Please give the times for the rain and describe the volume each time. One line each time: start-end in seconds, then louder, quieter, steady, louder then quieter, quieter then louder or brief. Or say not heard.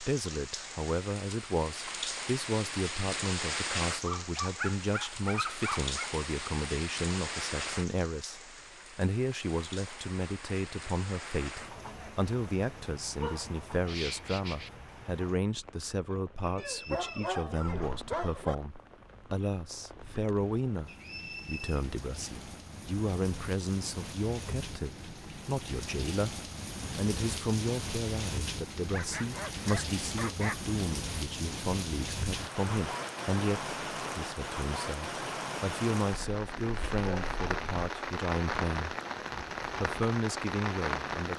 0.0-41.3 quieter then louder.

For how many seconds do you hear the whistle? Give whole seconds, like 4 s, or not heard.
2 s.